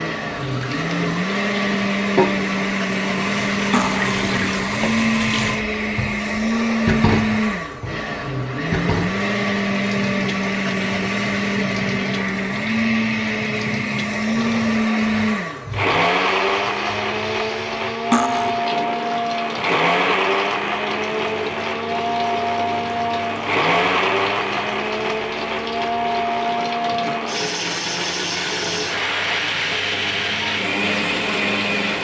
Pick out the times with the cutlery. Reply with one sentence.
The cutlery can be heard from 3.7 to 4.2 s and from 18.1 to 18.6 s.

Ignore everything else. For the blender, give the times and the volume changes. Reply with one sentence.
The blender can be heard from 0.0 to 32.0 s, at a steady volume.